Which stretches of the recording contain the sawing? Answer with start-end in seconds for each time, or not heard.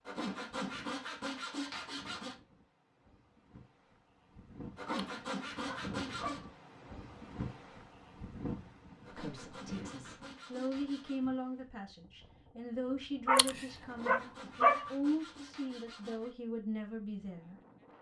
0.1-2.4, 4.8-6.5, 9.1-11.2, 13.8-16.4.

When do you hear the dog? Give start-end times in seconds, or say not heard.
4.8-6.5, 13.2-14.9.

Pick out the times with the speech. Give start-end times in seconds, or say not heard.
9.1-17.6.